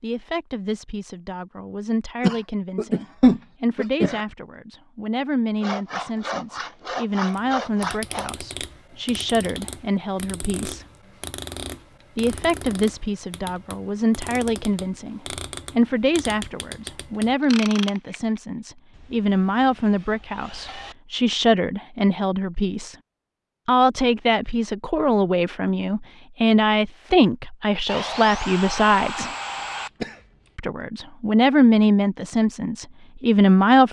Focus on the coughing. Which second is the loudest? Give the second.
3 s.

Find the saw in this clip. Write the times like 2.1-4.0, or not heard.
5.6-8.3, 18.9-20.9, 27.9-29.9.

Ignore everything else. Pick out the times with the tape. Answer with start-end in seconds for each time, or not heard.
not heard.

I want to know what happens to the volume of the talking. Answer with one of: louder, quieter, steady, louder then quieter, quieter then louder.
louder.